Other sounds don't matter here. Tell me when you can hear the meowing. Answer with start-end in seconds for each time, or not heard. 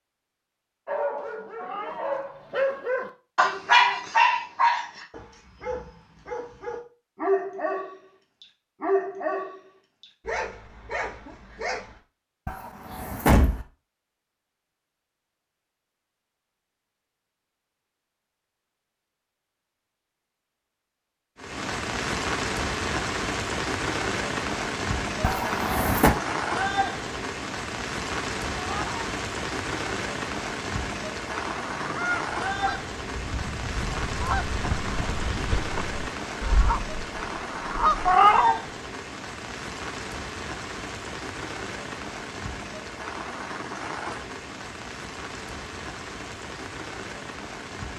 1.6-2.1, 28.6-29.0, 38.0-38.5.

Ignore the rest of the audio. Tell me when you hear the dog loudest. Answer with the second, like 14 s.
4 s.